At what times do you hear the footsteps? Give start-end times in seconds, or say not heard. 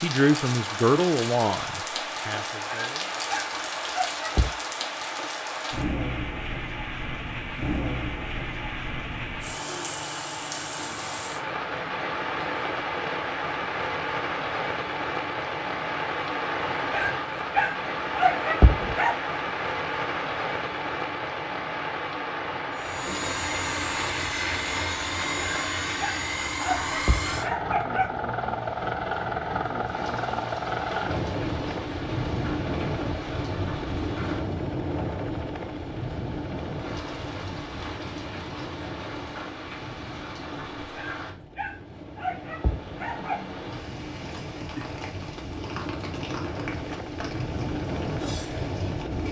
not heard.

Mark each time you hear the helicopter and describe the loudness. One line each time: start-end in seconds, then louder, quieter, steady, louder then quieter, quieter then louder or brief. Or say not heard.
22.8-49.2 quieter then louder.